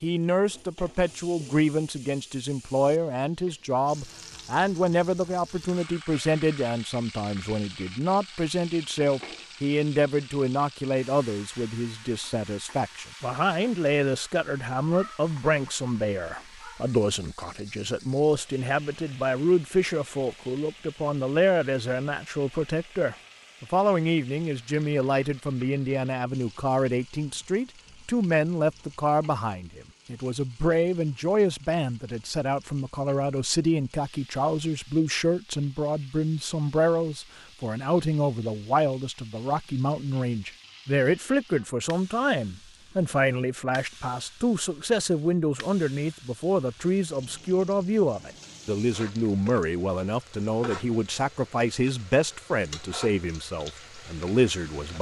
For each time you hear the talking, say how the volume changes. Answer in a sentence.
The talking can be heard from 0.0 to 54.9 s, at a steady volume.